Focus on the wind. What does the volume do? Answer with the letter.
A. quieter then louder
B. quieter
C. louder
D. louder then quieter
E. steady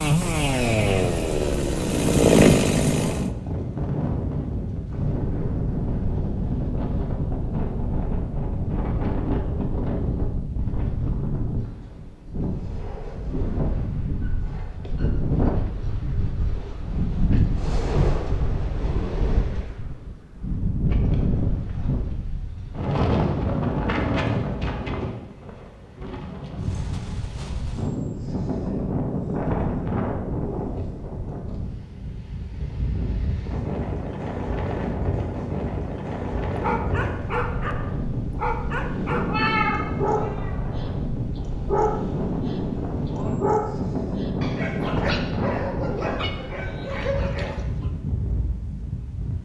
E.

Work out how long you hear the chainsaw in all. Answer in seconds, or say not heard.
3 s.